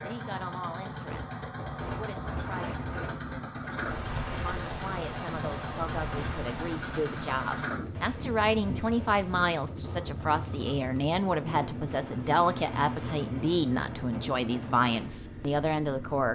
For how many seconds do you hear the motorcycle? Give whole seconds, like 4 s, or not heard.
16 s.